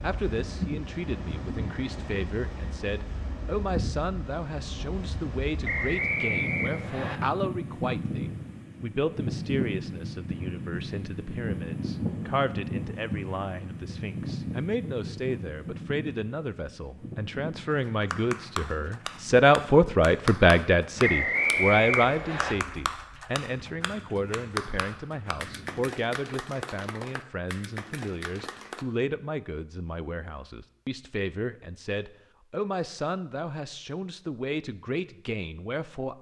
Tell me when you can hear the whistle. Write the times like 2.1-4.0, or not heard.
5.7-7.2, 21.0-22.6.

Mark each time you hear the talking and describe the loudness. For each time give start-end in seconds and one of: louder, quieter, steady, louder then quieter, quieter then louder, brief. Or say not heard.
0.0-36.1 louder then quieter.